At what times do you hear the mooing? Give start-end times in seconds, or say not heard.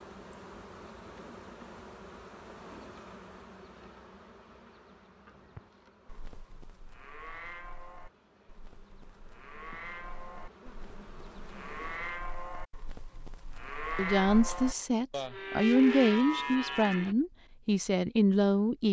5.2-17.1.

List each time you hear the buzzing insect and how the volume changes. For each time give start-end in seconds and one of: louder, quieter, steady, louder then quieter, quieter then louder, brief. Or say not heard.
0.0-12.3 quieter then louder.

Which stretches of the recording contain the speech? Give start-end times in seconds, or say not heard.
13.9-18.8.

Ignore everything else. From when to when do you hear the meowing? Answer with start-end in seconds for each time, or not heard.
not heard.